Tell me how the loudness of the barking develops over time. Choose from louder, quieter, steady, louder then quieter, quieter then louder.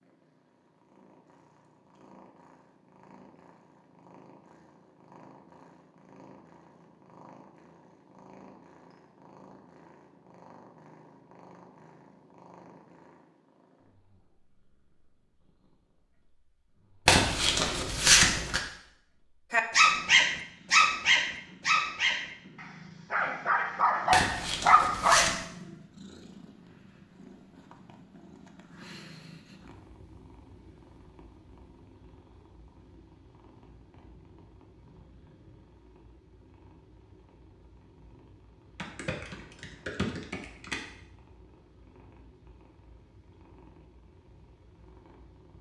quieter then louder.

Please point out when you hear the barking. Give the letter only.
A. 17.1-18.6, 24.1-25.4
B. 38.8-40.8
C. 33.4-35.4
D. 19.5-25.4
D.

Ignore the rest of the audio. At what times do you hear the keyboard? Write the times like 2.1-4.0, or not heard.
38.8-40.8.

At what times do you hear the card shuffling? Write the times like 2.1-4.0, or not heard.
17.1-18.6, 24.1-25.4.